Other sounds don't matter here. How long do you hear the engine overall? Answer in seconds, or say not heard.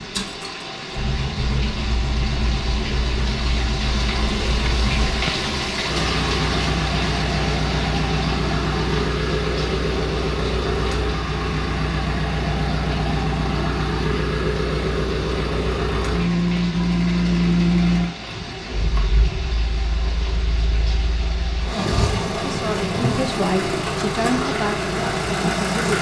26 s.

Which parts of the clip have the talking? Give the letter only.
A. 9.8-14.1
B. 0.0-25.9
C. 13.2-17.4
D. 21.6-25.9
D.